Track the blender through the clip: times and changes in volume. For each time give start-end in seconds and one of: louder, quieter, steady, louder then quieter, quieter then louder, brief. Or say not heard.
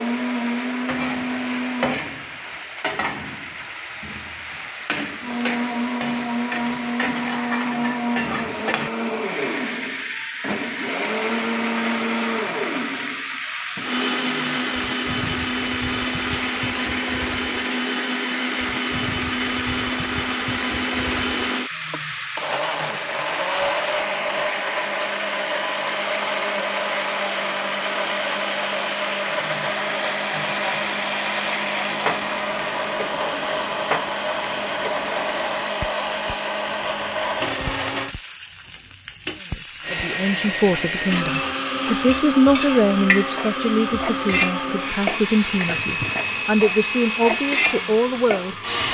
0.0-2.0 brief
5.2-38.1 steady
39.8-48.8 steady.